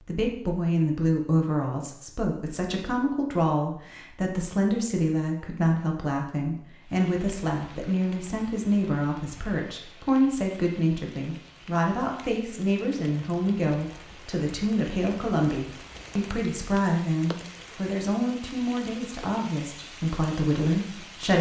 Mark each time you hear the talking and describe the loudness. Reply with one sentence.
You can hear the talking from 0.1 to 21.3 s, at a steady volume.